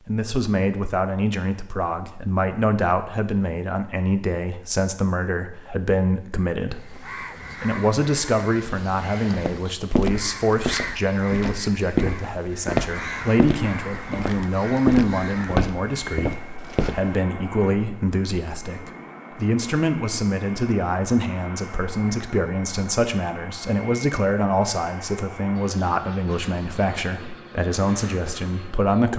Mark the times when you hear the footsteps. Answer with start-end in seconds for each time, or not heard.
9.3-17.2.